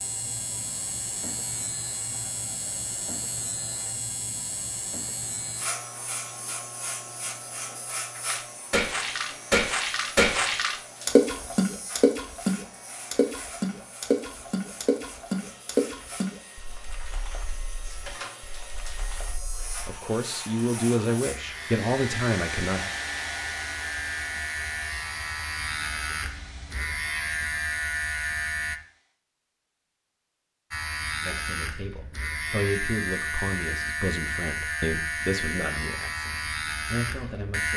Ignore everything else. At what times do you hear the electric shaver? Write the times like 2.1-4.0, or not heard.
0.0-28.8, 30.7-37.7.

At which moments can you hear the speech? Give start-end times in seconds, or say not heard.
19.9-22.9, 31.2-37.7.